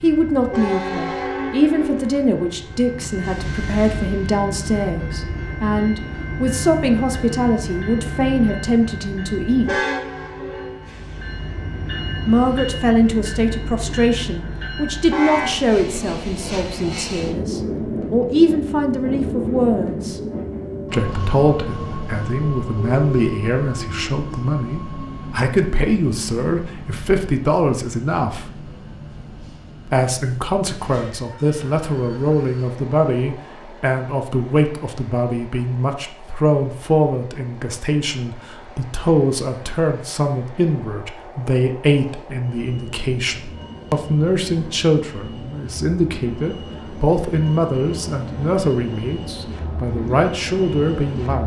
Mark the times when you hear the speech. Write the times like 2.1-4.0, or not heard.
0.0-9.8, 12.2-20.1, 20.9-28.4, 29.9-51.4.